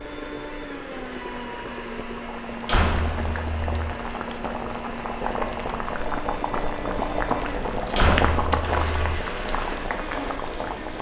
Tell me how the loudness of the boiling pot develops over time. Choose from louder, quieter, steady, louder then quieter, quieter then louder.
louder.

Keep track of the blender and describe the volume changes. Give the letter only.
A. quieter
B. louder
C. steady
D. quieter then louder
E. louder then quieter
C.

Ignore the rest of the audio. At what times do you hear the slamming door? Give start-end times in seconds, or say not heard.
2.6-3.9, 7.9-9.2.